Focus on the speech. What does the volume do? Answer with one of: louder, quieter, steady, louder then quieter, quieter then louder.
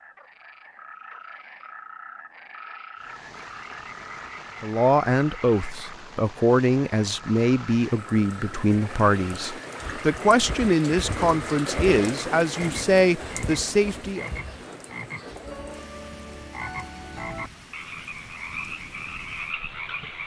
steady.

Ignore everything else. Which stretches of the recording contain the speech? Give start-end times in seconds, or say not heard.
4.6-14.3.